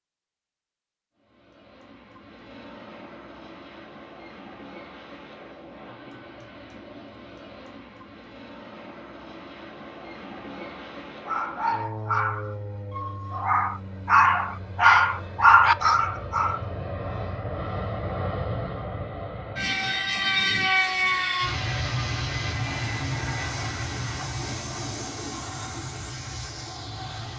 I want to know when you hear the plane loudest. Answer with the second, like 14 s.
21 s.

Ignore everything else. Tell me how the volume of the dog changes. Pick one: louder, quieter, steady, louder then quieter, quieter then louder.
quieter then louder.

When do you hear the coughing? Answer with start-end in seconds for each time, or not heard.
not heard.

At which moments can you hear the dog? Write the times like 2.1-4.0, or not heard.
11.2-16.6.